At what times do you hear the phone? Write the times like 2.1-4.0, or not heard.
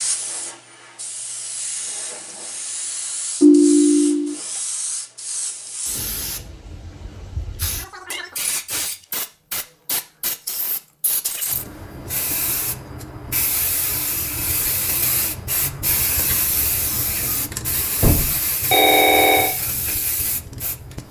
3.4-4.3, 18.0-19.5.